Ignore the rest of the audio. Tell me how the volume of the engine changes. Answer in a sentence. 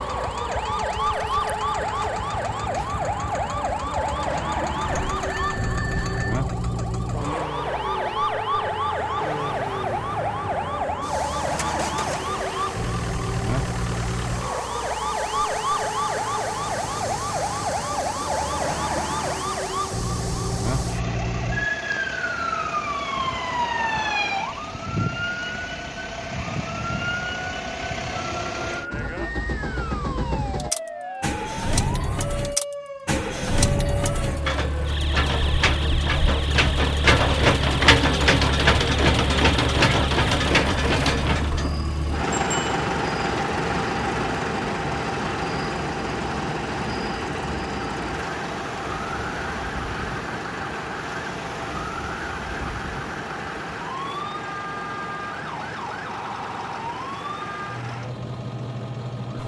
The volume of the engine goes up, then down.